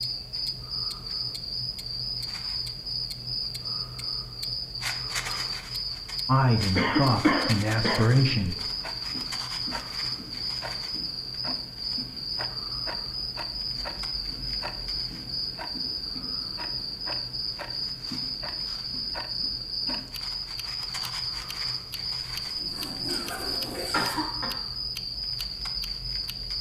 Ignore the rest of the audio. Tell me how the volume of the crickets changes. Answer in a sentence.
The loudness of the crickets stays about the same.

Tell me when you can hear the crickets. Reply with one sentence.
The crickets can be heard from 0.0 to 26.5 s.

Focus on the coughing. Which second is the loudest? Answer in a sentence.
The volume of the coughing peaks at 7 seconds.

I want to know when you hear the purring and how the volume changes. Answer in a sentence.
The purring can't be heard in this clip.